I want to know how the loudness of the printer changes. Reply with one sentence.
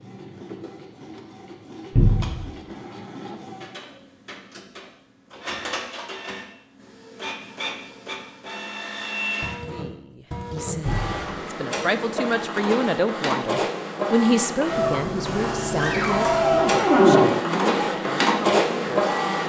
The volume of the printer goes up.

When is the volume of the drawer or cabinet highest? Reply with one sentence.
The volume of the drawer or cabinet peaks at 17 seconds.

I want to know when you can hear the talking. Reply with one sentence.
You can hear the talking from 9.7 to 19.1 s.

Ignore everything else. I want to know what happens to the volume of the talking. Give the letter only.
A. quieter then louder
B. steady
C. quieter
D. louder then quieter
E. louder
D.